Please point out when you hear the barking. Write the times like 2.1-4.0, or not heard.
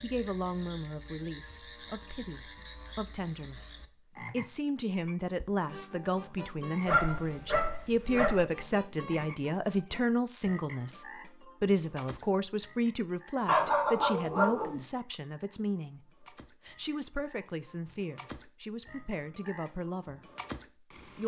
6.8-8.4, 13.4-14.8.